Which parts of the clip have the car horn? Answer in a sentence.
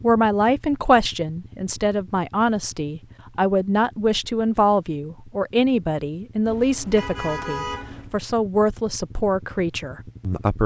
The car horn can be heard from 6.5 to 8.2 s.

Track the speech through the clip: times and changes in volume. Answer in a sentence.
You can hear the speech from 0.0 to 10.6 s, at a steady volume.